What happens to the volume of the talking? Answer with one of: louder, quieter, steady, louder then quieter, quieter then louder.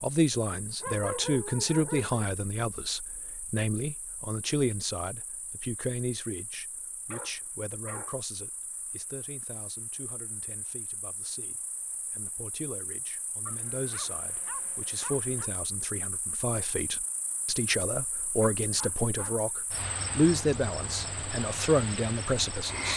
quieter then louder.